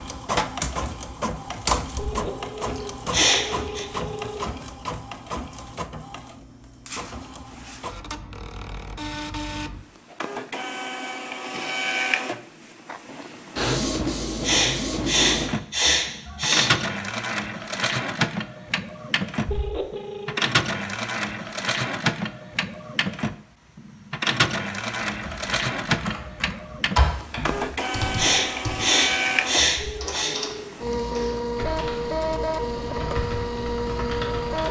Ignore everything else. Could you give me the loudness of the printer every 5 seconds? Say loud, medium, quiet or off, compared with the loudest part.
loud, medium, loud, loud, loud, loud, loud.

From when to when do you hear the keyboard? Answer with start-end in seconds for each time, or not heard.
25.0-34.6.